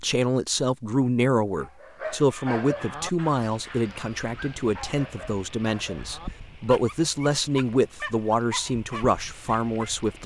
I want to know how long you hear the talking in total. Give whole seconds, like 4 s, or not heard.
10 s.